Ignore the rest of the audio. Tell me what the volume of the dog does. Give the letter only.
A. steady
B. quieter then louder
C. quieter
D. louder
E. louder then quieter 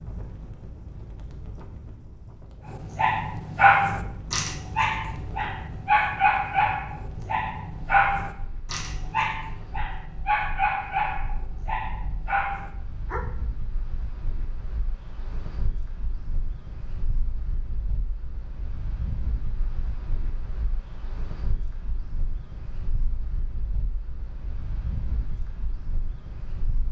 C.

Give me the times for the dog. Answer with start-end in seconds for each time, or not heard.
2.7-13.2.